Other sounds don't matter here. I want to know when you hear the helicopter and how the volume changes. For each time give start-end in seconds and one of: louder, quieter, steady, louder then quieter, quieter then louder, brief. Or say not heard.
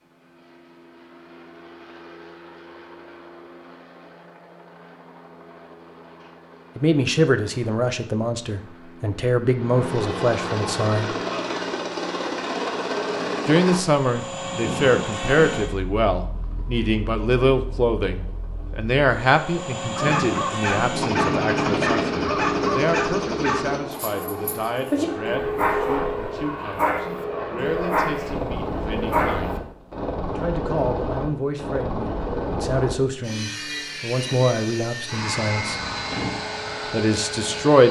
0.0-37.8 louder.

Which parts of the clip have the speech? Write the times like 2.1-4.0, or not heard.
6.8-11.2, 13.4-29.6, 30.2-35.8, 36.9-37.8.